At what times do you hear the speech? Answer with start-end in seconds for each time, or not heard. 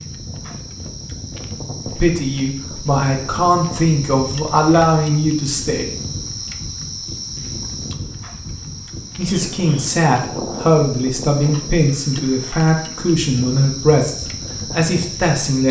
1.9-5.8, 9.2-15.6.